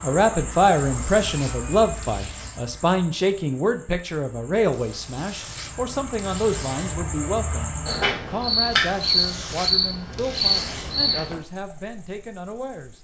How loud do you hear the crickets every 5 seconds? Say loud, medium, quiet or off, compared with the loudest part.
medium, loud, loud.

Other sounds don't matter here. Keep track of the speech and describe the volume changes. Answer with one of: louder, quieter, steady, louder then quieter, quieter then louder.
quieter.